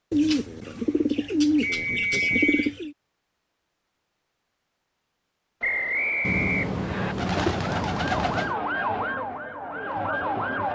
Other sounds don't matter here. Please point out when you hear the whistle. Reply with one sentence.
You can hear the whistle from 1.6 to 2.6 s and from 5.6 to 7.2 s.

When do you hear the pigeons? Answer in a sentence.
The pigeons can be heard from 0.1 to 3.0 s and from 6.2 to 8.6 s.